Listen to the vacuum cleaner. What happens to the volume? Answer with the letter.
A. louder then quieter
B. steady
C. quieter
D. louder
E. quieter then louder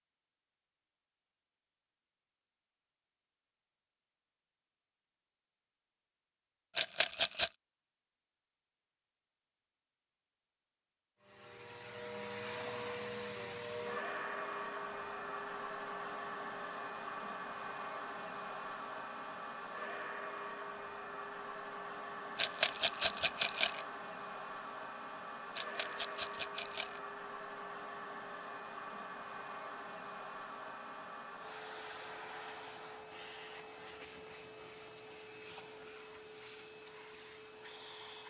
C.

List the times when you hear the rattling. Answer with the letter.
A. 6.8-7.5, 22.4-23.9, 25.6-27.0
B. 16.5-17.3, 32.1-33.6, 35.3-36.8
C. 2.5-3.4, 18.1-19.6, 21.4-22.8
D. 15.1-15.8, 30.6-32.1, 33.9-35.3
A.